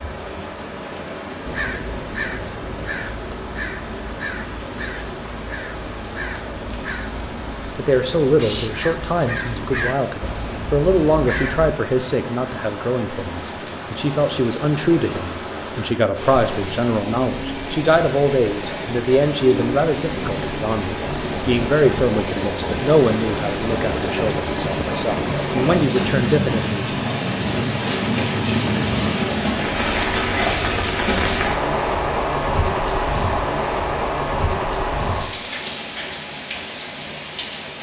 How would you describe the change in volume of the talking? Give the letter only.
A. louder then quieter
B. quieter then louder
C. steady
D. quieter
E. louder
C.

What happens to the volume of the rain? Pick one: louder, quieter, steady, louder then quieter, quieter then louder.
louder.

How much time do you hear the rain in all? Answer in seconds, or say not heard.
38 s.